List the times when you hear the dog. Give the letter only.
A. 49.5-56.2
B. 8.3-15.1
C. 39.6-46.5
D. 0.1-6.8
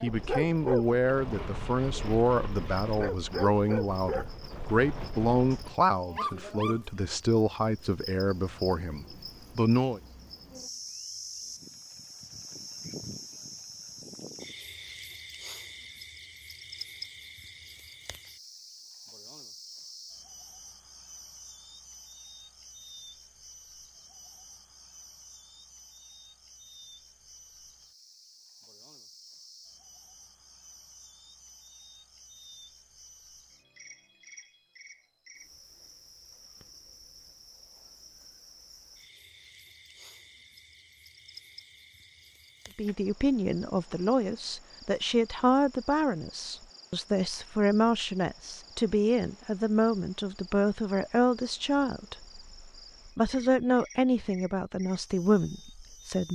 D.